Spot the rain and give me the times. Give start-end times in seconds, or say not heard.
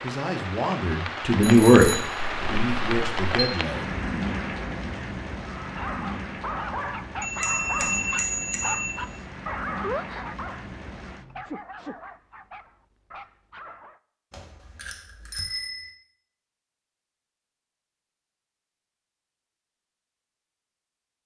0.0-11.4.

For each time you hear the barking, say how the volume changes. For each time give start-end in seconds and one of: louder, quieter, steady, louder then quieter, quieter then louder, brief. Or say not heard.
5.5-14.0 quieter.